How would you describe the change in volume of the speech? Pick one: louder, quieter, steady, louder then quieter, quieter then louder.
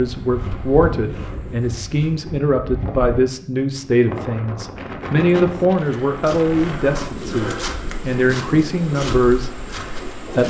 steady.